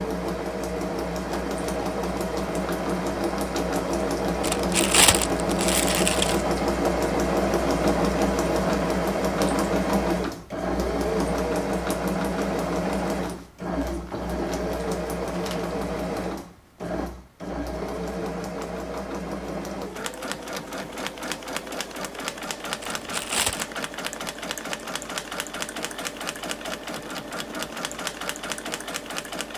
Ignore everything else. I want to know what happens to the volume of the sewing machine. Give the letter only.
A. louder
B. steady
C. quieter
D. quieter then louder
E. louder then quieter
C.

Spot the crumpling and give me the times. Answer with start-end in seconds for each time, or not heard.
4.4-6.5, 22.8-23.6.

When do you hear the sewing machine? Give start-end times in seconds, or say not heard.
0.0-29.5.